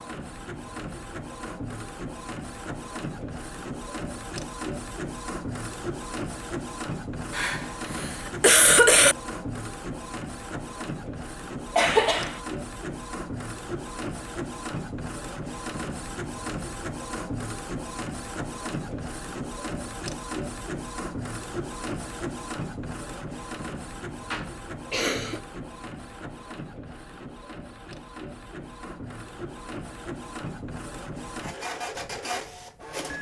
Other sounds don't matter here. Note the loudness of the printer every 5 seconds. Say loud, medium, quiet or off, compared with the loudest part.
loud, loud, loud, loud, loud, medium, loud.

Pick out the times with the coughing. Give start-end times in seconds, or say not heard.
7.3-9.2, 11.8-12.4, 24.3-25.4.